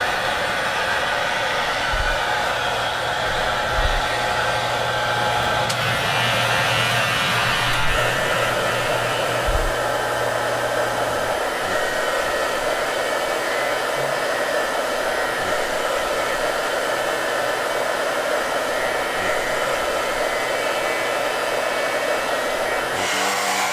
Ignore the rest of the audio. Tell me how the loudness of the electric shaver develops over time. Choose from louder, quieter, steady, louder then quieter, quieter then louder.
louder then quieter.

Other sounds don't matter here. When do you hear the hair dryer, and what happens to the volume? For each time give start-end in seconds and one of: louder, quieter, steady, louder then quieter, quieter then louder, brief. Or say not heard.
0.0-23.6 steady.